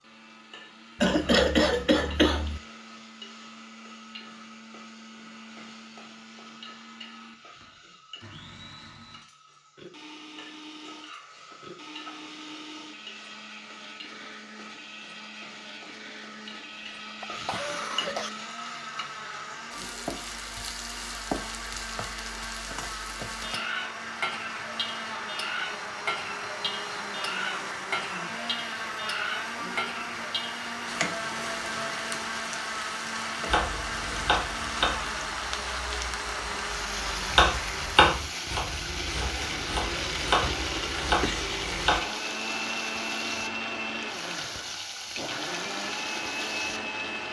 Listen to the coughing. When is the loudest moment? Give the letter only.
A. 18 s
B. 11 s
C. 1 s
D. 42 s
C.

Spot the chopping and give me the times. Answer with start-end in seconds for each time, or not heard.
33.5-42.0.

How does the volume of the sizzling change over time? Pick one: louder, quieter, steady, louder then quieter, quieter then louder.
louder.